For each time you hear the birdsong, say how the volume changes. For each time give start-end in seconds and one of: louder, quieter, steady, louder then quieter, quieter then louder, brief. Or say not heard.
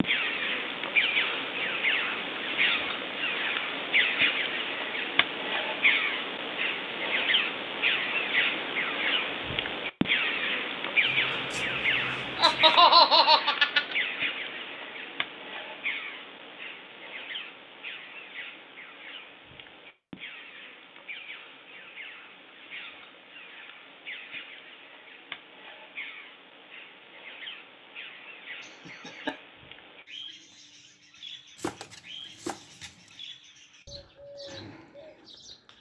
0.0-35.7 quieter.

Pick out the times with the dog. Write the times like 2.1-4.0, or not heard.
not heard.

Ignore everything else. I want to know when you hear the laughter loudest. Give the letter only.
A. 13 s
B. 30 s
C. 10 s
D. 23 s
A.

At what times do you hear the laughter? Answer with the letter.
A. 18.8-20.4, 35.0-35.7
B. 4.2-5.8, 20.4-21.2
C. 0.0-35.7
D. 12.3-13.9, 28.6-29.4
D.